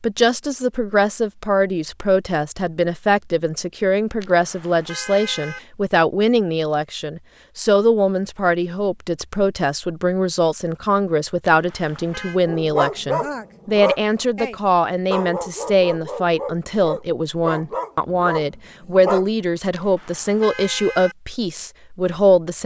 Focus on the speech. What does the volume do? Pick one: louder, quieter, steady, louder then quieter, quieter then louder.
steady.